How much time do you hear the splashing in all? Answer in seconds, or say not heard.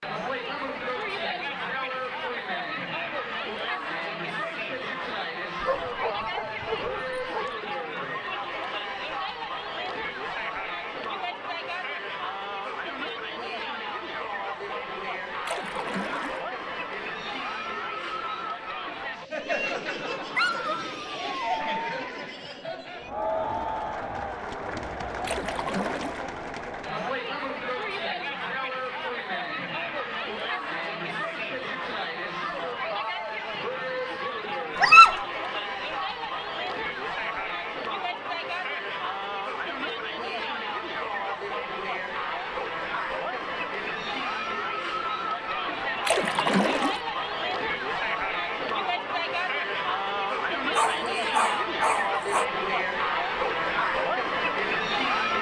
3 s.